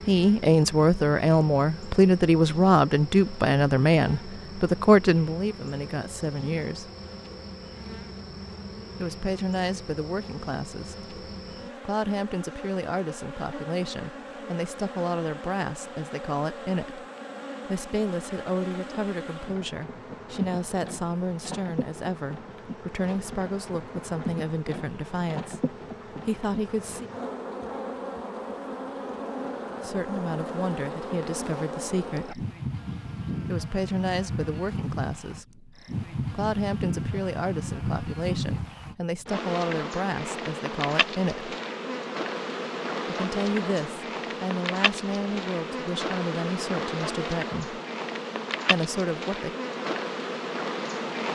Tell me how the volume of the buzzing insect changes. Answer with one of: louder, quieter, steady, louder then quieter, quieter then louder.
louder.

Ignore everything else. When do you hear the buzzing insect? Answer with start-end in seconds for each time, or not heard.
0.0-51.2.